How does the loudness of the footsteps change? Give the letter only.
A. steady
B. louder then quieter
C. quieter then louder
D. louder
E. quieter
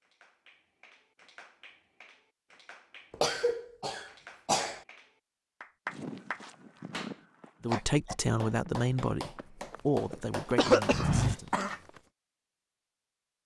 C.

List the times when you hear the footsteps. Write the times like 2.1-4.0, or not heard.
5.9-12.0.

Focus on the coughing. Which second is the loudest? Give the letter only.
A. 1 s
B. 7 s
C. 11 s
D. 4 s
C.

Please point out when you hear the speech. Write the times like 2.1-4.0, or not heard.
7.7-11.5.